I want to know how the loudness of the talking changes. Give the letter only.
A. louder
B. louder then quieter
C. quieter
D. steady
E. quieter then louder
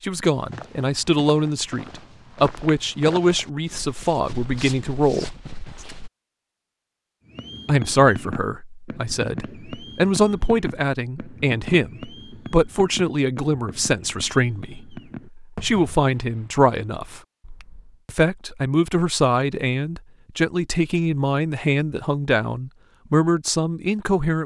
D.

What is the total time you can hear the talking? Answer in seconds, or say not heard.
21 s.